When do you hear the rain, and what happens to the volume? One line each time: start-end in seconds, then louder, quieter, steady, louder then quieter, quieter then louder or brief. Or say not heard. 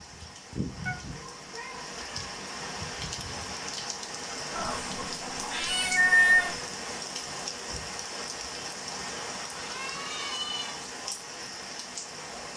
0.0-12.5 steady.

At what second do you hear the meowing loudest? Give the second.
6 s.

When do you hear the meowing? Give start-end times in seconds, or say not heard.
0.8-2.3, 4.5-6.6, 9.5-10.8.